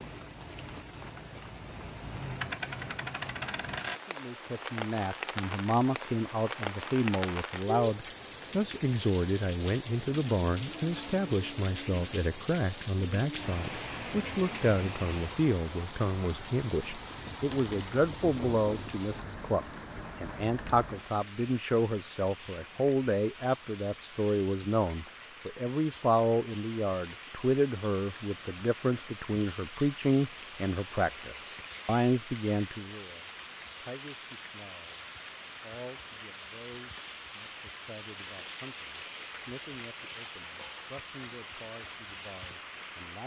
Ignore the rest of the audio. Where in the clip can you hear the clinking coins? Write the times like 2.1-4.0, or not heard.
2.4-4.0, 17.5-17.9, 40.4-40.9.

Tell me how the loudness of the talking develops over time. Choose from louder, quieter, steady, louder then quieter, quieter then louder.
quieter.